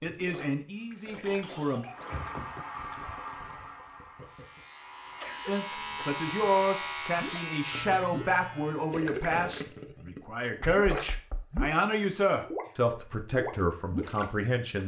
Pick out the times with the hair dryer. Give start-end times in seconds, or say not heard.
1.9-5.3.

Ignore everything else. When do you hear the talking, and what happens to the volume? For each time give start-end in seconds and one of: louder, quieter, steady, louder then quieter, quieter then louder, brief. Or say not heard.
0.0-1.9 brief
5.5-14.8 steady.